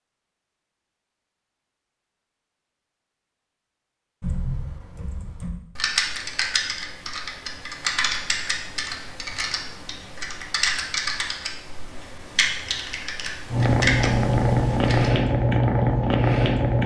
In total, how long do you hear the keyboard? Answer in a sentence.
You can hear the keyboard for 11 seconds altogether.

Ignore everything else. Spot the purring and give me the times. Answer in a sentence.
The purring can be heard from 13.5 to 16.8 s.